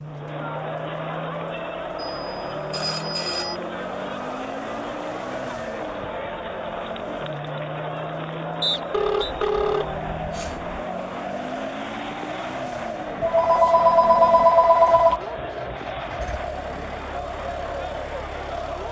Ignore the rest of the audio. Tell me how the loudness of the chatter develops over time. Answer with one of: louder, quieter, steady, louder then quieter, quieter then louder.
steady.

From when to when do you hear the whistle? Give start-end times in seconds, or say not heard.
8.6-9.3.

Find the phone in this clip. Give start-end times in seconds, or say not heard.
1.9-3.6, 8.9-10.8, 13.2-15.2.